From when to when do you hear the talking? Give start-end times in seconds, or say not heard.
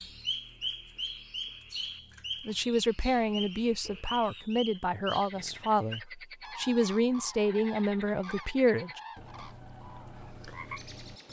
2.5-9.0.